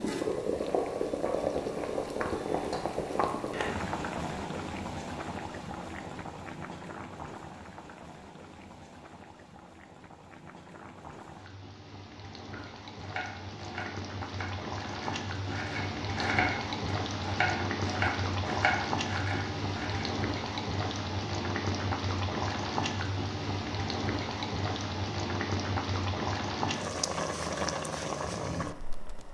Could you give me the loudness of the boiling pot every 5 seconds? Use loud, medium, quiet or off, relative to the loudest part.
loud, medium, medium, loud, loud, loud.